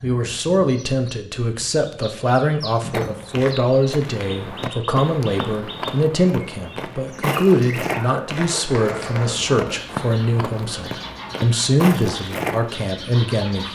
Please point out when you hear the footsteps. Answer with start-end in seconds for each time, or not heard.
2.9-12.8.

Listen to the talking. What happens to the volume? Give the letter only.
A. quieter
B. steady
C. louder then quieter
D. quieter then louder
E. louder
B.